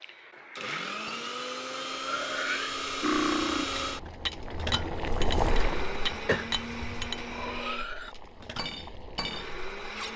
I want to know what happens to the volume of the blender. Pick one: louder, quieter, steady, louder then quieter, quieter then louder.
quieter.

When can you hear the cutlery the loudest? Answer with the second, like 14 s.
3 s.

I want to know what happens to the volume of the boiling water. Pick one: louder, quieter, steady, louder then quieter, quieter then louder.
louder then quieter.